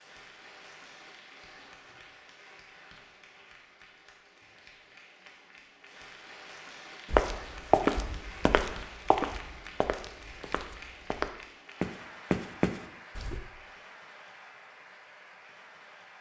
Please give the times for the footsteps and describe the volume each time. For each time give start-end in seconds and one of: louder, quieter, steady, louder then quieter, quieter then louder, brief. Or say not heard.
7.1-13.4 quieter then louder.